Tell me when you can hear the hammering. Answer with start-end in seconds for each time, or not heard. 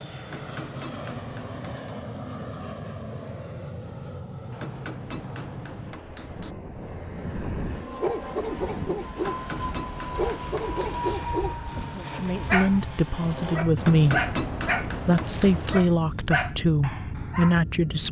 0.2-1.9, 4.5-6.5, 9.2-11.2, 13.8-15.8.